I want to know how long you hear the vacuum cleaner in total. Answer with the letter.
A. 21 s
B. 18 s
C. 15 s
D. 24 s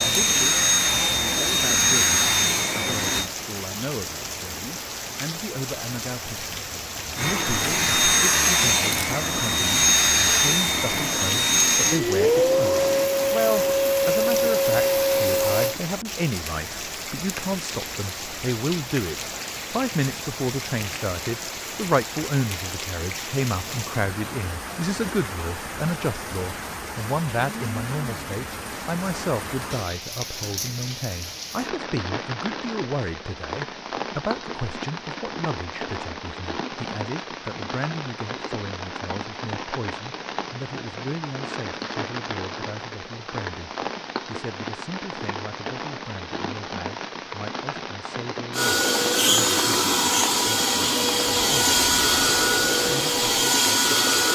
B.